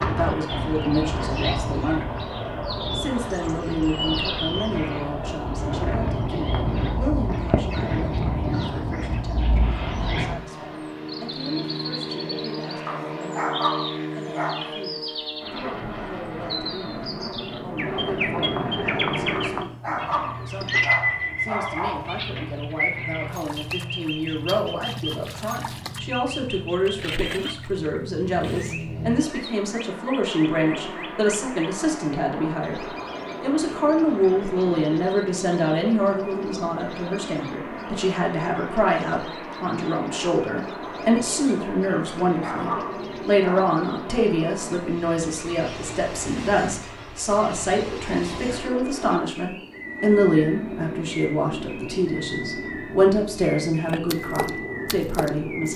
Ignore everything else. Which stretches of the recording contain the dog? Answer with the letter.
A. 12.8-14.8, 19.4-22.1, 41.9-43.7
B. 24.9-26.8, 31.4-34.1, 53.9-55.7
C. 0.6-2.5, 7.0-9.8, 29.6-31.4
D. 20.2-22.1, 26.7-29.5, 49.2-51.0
A.